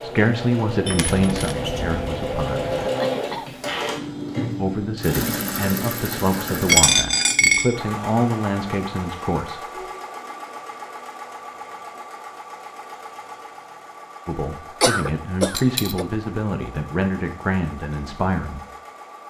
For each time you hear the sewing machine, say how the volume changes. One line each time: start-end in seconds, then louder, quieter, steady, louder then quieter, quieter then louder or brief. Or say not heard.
0.0-19.2 quieter.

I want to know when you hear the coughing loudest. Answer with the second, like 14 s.
15 s.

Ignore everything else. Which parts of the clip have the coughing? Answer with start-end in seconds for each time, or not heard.
2.8-3.7, 14.8-16.1.